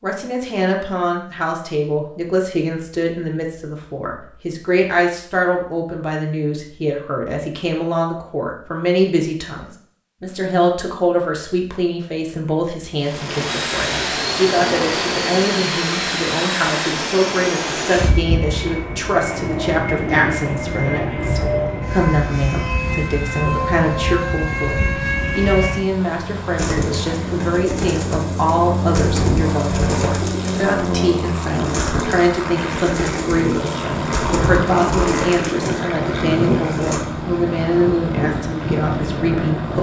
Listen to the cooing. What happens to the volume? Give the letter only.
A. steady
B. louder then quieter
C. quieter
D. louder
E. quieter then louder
A.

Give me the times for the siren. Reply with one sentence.
The siren can't be heard in this clip.